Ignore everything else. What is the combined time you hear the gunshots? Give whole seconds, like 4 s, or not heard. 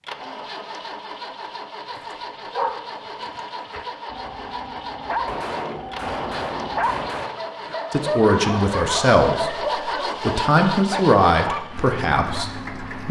2 s.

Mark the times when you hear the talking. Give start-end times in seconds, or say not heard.
7.9-13.0.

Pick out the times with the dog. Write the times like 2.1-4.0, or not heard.
1.9-12.4.